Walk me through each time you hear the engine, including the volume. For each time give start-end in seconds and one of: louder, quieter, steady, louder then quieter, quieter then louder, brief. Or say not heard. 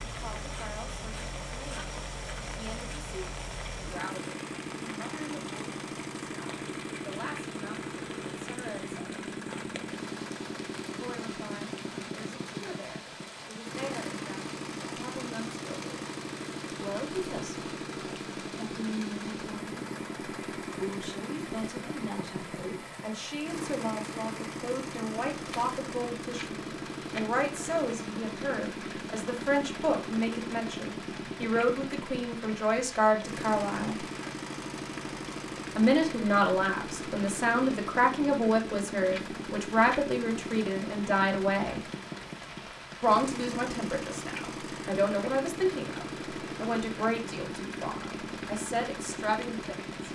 0.0-50.1 steady.